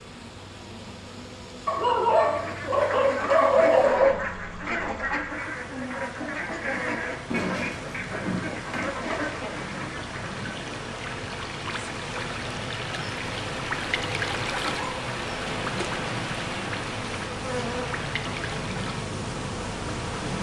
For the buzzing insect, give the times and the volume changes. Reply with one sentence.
The buzzing insect can be heard from 0.0 to 20.3 s, getting louder.